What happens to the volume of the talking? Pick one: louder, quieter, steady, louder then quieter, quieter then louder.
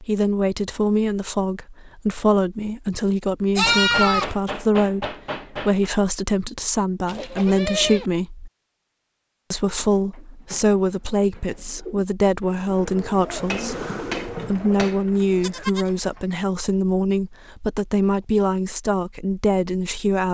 steady.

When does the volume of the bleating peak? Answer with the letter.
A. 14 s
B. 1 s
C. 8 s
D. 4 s
D.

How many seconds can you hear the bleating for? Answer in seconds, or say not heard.
2 s.